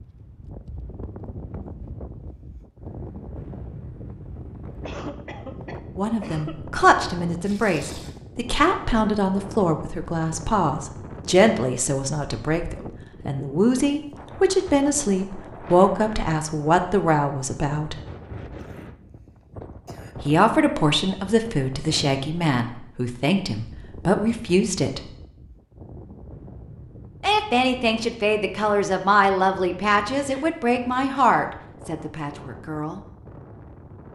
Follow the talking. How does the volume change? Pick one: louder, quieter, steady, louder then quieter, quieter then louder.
steady.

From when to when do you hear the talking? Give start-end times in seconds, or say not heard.
6.0-17.9, 20.2-25.0, 27.2-33.0.